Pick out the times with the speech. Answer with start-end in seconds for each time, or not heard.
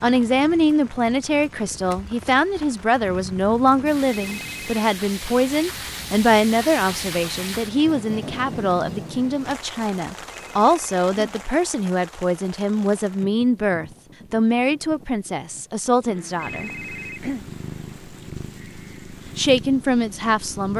0.0-16.7, 19.4-20.7.